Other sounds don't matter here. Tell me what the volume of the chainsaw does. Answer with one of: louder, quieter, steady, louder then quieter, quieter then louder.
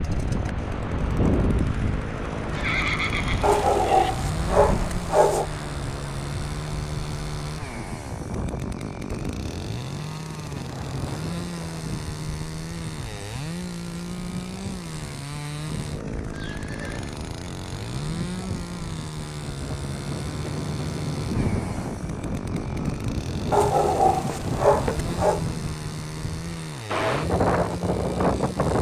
steady.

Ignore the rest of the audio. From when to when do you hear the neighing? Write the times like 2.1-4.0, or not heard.
2.5-4.1, 16.3-17.1.